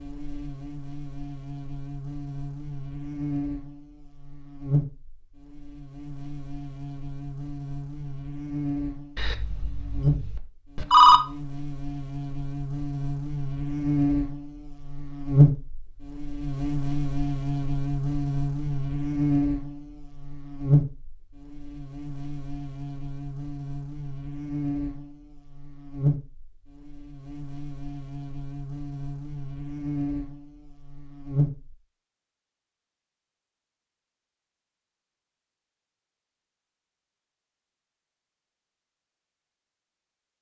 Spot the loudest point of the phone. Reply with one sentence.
The loudest moment of the phone is at 11 seconds.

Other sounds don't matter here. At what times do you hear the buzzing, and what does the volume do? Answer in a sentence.
You can hear the buzzing from 0.0 to 31.8 s, getting louder then quieter.